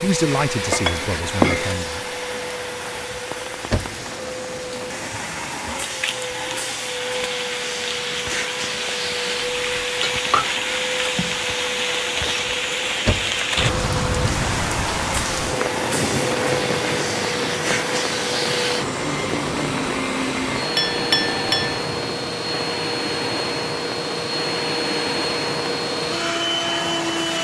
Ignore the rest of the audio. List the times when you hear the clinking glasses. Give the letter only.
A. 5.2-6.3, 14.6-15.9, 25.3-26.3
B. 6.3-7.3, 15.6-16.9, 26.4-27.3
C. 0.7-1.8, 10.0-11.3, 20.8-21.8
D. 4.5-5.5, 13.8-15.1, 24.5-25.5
C.